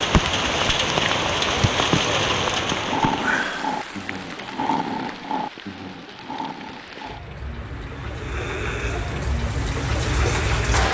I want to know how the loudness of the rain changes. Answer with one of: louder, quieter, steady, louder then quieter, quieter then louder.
quieter then louder.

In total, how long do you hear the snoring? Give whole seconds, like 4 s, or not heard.
8 s.